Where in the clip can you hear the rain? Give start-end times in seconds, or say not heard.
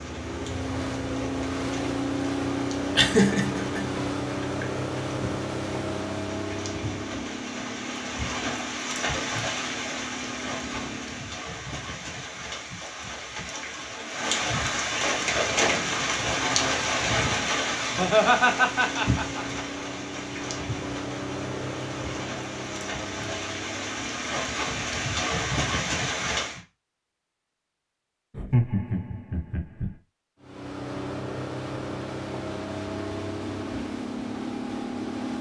0.0-26.6.